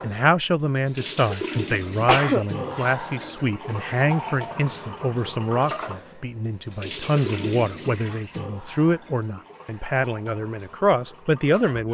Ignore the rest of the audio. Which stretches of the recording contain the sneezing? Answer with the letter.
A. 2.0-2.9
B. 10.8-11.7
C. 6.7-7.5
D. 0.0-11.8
A.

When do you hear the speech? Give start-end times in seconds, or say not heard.
0.0-11.8.